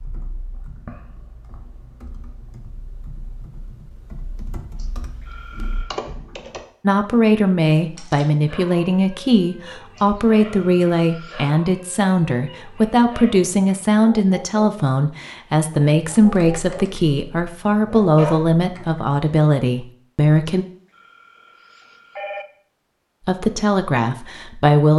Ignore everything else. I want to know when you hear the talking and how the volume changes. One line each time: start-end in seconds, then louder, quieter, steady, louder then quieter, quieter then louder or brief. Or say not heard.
6.8-20.6 steady
23.2-24.9 brief.